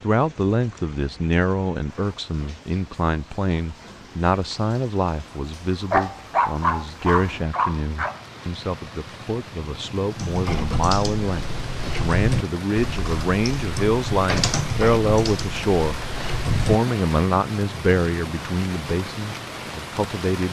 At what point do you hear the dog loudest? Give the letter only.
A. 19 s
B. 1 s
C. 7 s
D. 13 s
C.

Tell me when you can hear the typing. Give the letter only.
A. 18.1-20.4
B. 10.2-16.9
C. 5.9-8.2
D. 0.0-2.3
B.